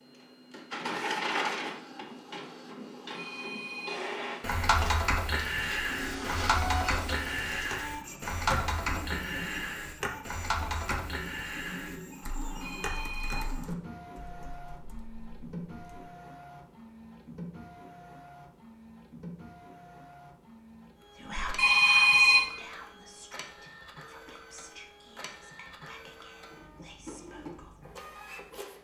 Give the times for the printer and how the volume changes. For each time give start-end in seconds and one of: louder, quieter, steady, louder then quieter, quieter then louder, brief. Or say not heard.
0.0-28.7 quieter.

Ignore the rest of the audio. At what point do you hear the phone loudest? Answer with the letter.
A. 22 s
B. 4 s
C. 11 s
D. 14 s
A.